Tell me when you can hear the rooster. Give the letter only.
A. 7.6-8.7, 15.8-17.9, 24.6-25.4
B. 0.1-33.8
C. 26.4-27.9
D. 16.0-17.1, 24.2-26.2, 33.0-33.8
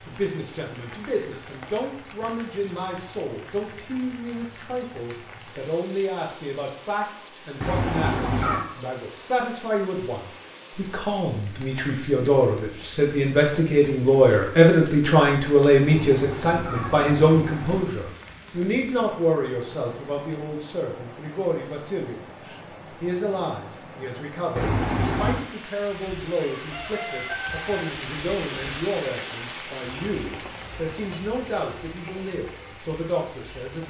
C.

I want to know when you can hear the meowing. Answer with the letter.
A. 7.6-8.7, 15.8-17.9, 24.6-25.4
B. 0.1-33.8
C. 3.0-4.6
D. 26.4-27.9
A.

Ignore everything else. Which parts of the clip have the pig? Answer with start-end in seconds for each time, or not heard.
not heard.